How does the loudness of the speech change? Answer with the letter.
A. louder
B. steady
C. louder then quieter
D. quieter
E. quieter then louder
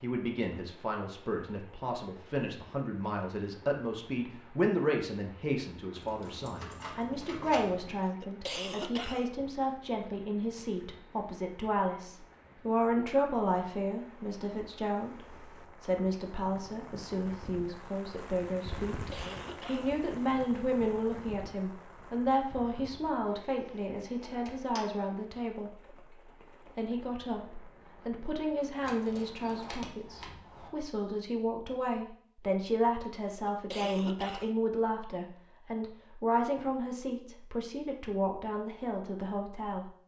B.